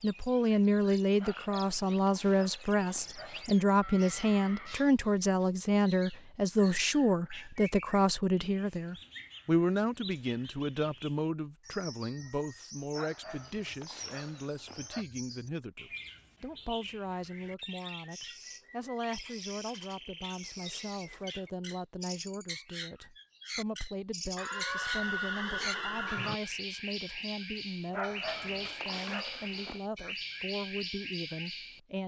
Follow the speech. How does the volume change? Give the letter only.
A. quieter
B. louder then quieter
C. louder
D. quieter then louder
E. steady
A.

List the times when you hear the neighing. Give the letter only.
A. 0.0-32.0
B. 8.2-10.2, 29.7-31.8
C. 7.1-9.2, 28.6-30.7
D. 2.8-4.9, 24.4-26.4
D.